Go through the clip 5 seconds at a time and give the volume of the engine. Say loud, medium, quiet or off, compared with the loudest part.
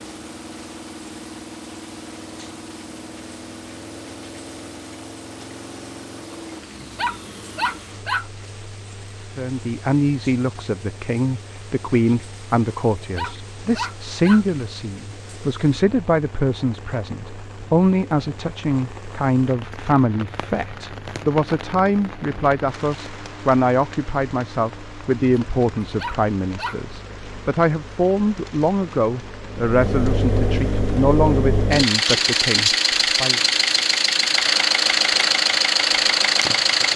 quiet, quiet, quiet, quiet, quiet, quiet, loud, loud.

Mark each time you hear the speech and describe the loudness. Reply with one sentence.
The speech can be heard from 9.3 to 33.4 s, at a steady volume.